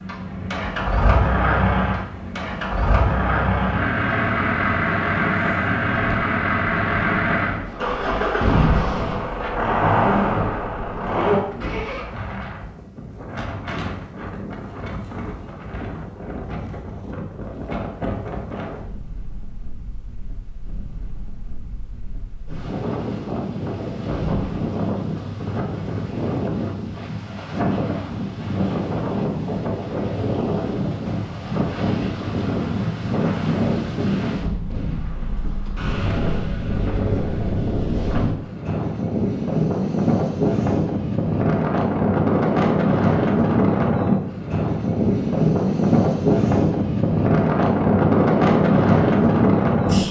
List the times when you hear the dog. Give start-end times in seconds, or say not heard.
not heard.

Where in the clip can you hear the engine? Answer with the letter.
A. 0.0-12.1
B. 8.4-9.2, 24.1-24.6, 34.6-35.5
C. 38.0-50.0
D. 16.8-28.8
A.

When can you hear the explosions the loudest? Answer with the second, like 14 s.
9 s.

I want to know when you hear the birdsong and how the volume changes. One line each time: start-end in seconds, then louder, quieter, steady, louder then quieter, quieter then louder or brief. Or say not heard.
not heard.